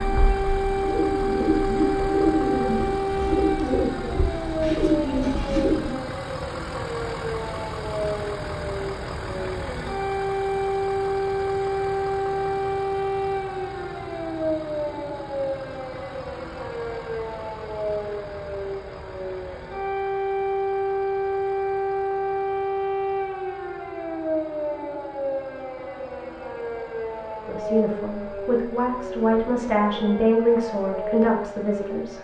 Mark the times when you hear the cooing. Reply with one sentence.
You can hear the cooing from 0.0 to 6.0 s.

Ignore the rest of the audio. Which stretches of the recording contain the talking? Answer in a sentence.
The talking can be heard from 27.4 to 32.1 s.